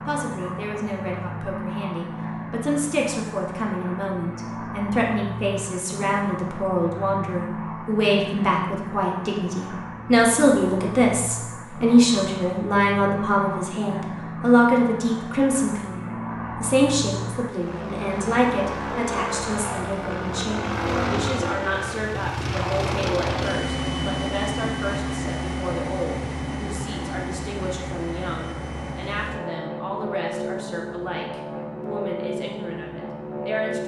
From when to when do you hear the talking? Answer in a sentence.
The talking can be heard from 0.1 to 33.8 s.